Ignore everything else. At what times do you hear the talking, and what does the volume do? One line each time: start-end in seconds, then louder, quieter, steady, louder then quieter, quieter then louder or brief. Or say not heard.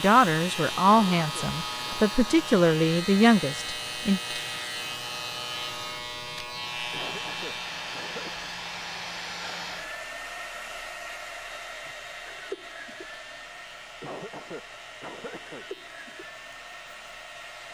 0.0-4.2 quieter then louder.